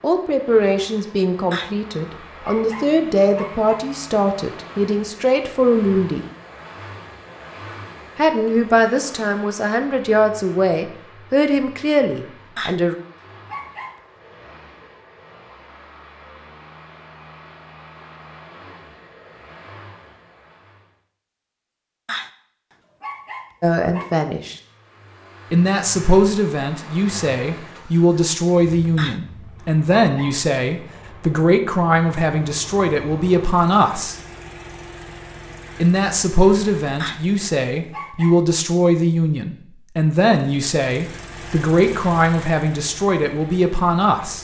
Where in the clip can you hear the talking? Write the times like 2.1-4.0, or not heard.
0.0-6.2, 8.2-12.9, 23.6-24.6, 25.5-34.1, 35.8-44.3.